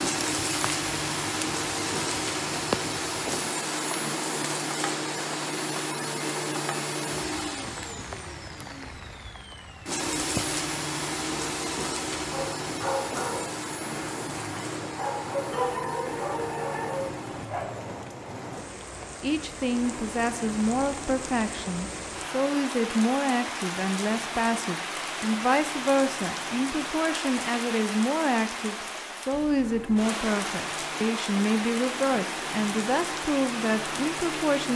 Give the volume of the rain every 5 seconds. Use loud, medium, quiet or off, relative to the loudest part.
loud, medium, medium, medium, loud, loud, loud.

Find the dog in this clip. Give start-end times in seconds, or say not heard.
12.3-17.7.